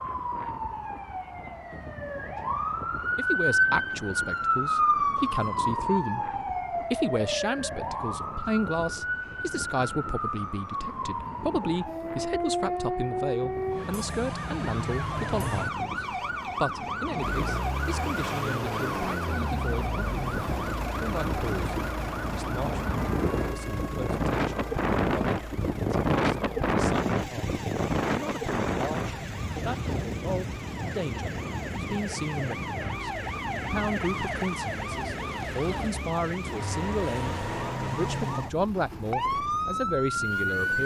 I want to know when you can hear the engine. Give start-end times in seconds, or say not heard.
17.1-40.8.